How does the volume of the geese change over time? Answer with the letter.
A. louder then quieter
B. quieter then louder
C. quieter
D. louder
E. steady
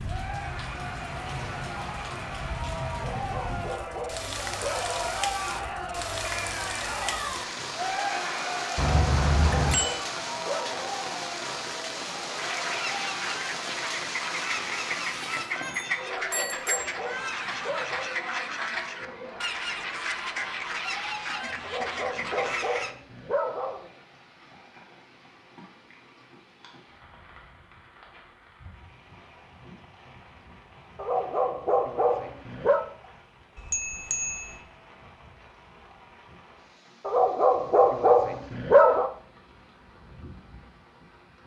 E.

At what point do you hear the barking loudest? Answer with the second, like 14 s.
39 s.